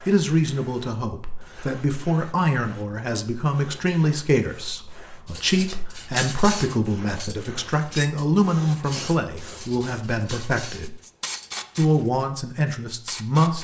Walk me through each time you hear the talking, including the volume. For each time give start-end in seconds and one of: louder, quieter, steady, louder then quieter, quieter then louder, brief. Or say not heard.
0.1-10.9 steady
11.8-13.5 brief.